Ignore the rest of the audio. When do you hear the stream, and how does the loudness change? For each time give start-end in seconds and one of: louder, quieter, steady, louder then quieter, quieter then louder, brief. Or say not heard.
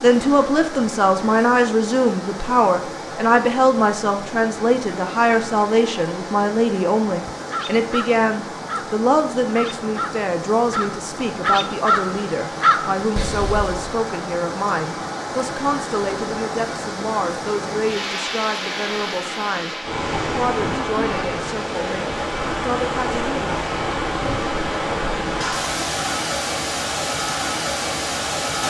0.0-28.6 louder.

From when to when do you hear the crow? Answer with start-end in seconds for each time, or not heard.
7.3-13.9.